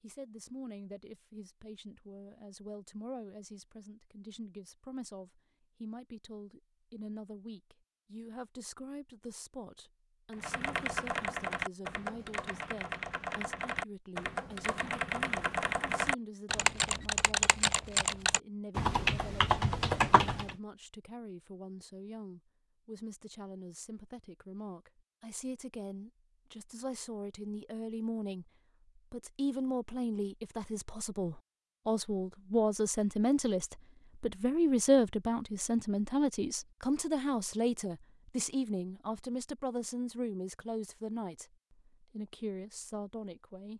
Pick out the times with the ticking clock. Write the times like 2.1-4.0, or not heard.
not heard.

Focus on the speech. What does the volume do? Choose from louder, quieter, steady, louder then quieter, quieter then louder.
louder.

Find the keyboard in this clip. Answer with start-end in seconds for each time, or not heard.
10.3-20.6.